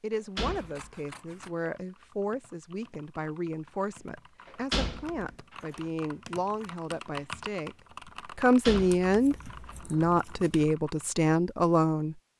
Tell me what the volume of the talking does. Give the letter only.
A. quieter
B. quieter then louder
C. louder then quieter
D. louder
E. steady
D.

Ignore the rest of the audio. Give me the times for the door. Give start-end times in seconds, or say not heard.
0.1-0.9, 4.5-5.8, 8.7-9.8.